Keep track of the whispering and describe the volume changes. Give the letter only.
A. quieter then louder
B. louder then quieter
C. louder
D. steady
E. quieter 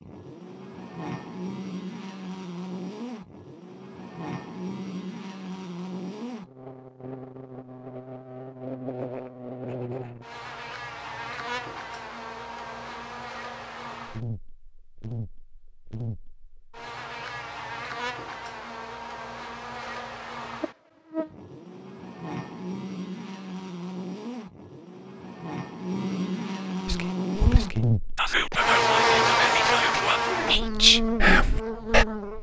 C.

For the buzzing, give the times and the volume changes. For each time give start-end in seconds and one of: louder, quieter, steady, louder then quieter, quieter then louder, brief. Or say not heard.
0.0-32.3 louder.